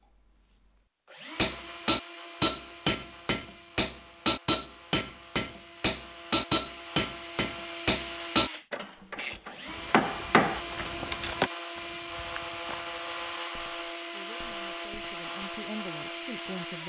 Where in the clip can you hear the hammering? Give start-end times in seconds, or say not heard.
1.4-11.5.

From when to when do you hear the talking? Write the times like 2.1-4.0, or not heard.
14.1-16.8.